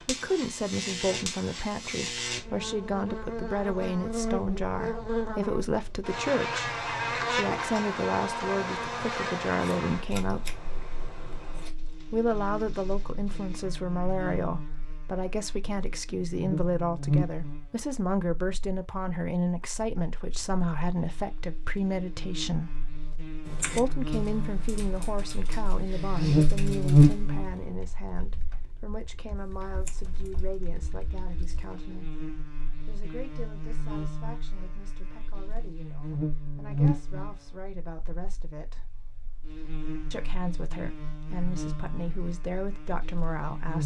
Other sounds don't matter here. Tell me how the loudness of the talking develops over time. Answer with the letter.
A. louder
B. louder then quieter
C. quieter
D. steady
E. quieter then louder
C.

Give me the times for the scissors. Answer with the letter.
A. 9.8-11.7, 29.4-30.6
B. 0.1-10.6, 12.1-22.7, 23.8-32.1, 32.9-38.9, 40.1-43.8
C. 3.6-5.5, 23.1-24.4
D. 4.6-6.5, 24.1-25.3
A.